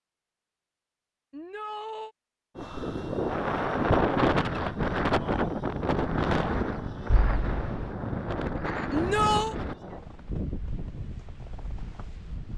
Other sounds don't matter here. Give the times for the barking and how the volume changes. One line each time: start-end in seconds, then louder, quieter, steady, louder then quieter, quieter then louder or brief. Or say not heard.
not heard.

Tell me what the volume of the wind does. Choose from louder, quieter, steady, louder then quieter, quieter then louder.
quieter.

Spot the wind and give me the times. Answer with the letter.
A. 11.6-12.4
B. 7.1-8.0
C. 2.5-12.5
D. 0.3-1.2
C.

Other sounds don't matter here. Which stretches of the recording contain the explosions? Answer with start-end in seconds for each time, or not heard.
7.1-8.0.